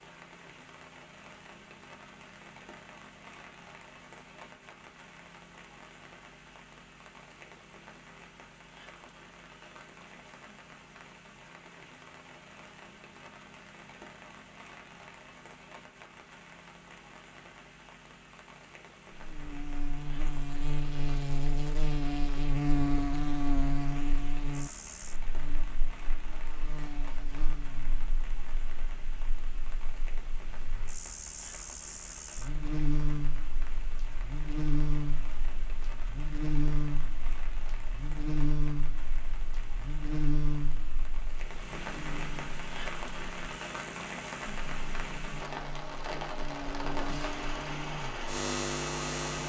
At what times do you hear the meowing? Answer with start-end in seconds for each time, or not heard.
not heard.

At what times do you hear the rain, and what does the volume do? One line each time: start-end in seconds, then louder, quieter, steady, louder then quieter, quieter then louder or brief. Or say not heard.
0.0-49.4 louder.